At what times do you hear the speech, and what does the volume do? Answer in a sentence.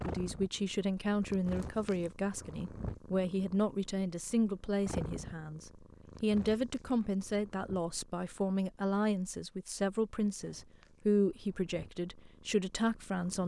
You can hear the speech from 0.0 to 13.4 s, at a steady volume.